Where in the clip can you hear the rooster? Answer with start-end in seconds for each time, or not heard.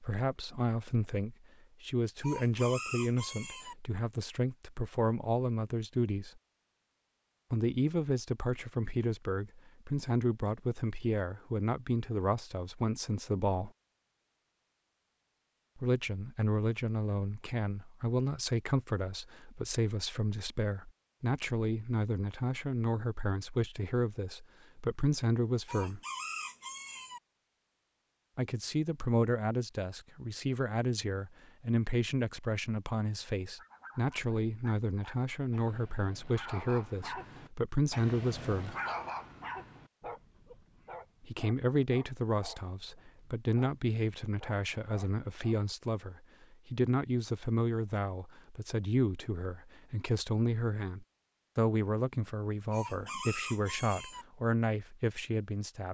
2.2-3.8, 25.6-27.2, 52.7-54.2.